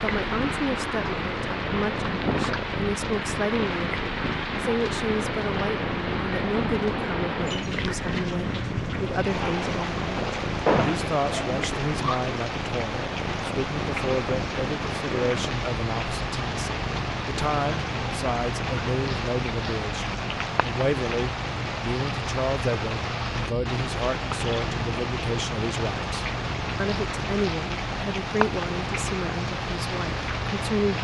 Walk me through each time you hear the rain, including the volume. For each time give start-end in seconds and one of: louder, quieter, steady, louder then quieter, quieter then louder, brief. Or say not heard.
0.0-30.9 steady.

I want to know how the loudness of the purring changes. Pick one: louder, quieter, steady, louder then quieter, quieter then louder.
steady.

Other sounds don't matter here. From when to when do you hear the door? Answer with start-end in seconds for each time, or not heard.
10.7-11.2.